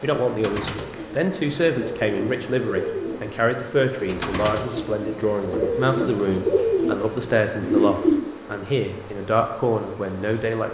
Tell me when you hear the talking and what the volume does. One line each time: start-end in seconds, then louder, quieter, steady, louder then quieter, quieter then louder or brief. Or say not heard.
0.0-10.6 steady.